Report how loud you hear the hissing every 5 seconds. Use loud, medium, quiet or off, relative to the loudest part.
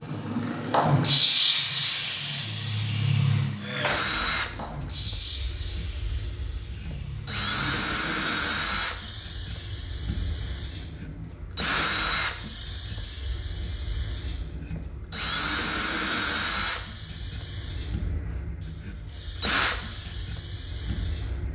loud, quiet, quiet, quiet, quiet.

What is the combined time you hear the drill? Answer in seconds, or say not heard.
18 s.